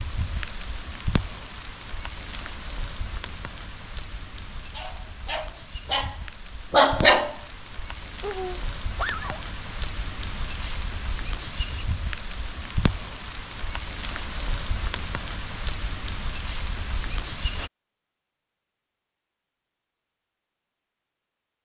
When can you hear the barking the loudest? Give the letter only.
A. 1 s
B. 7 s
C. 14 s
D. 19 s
B.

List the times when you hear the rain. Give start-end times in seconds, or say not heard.
0.0-17.7.